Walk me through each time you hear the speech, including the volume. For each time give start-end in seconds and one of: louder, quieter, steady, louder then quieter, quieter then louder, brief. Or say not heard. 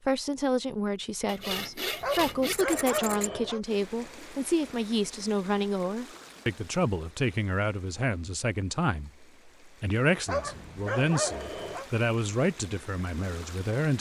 0.1-13.9 steady.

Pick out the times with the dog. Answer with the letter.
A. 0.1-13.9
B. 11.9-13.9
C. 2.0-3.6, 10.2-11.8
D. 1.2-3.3
C.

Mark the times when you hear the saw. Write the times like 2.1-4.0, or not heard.
1.2-3.3.